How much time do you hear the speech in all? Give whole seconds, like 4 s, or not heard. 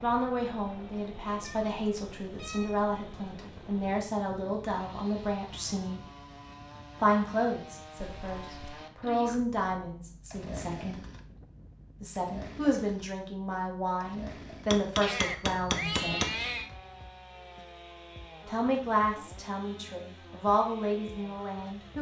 18 s.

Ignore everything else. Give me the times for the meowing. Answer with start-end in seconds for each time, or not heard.
1.4-2.8, 8.0-8.8, 15.0-16.7.